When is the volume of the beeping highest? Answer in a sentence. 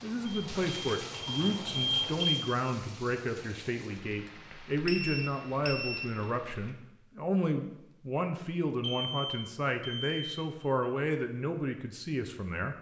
The volume of the beeping peaks at 2 seconds.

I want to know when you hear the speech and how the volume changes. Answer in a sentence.
The speech can be heard from 0.0 to 12.7 s, at a steady volume.